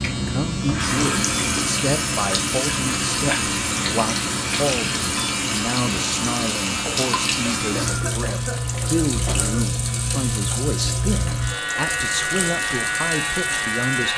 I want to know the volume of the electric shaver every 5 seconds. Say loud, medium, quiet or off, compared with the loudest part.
medium, loud, loud.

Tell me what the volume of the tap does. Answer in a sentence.
The volume of the tap goes down.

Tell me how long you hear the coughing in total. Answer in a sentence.
You can hear the coughing for 2 seconds altogether.